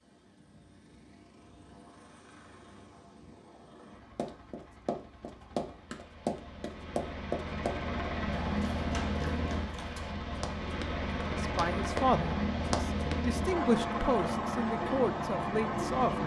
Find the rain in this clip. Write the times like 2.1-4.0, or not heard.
not heard.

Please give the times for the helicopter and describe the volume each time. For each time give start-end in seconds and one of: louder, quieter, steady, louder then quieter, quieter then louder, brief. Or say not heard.
0.0-16.2 louder.